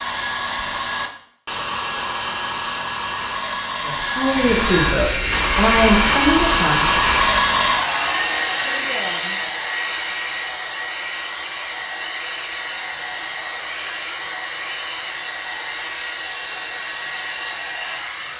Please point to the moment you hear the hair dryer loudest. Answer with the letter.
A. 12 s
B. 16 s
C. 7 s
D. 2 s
C.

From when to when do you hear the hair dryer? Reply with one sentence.
The hair dryer can be heard from 0.0 to 18.3 s.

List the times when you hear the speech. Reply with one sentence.
You can hear the speech from 3.8 to 7.0 s.